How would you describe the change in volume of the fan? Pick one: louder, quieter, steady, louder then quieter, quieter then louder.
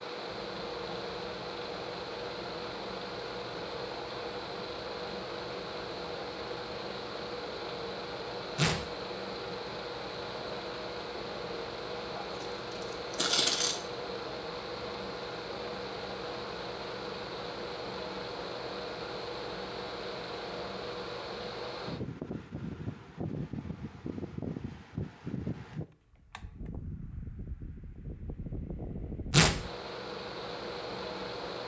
steady.